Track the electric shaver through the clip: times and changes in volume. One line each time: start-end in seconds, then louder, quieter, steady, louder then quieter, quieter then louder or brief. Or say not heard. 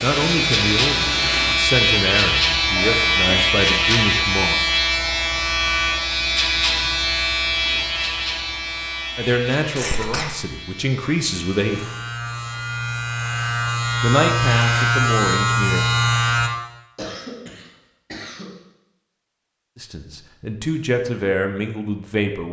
0.0-16.5 quieter then louder.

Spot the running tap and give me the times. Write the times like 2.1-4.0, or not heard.
0.0-1.6.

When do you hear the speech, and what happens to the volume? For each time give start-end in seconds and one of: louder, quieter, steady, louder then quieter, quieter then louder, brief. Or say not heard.
0.0-4.7 steady
9.2-11.9 brief
14.0-15.9 brief
19.8-22.4 brief.